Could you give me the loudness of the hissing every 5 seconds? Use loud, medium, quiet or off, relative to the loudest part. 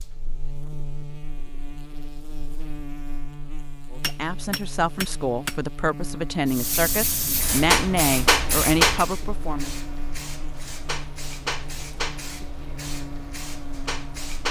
off, loud, medium.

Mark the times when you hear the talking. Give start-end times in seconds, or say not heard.
3.9-9.7.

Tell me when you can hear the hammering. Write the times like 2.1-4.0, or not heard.
4.0-5.6.